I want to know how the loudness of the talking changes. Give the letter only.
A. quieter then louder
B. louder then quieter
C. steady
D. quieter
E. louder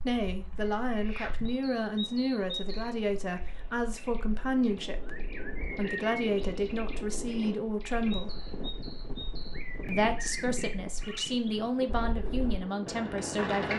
C.